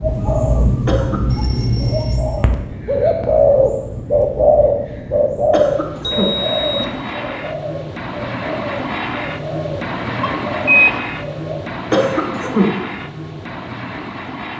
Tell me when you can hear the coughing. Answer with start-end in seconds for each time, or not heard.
0.8-1.4, 5.5-6.4, 11.9-12.8.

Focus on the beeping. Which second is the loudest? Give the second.
11 s.